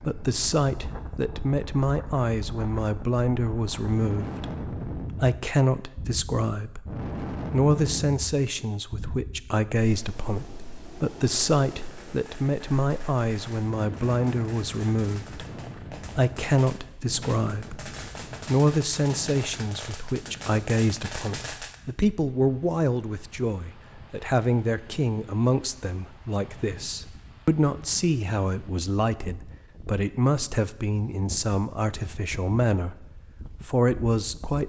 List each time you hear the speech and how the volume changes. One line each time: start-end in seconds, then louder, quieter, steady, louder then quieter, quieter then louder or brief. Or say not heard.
0.0-6.9 steady
7.5-33.0 steady
33.6-34.6 brief.